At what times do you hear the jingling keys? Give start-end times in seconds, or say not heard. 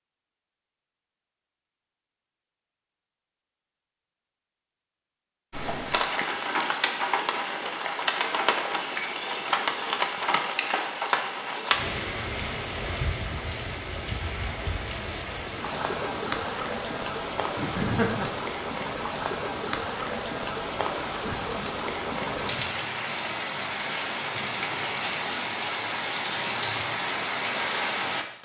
not heard.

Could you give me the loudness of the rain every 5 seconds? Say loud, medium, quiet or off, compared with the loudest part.
off, loud, loud, loud, loud, loud.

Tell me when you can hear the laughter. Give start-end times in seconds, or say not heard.
17.6-18.4.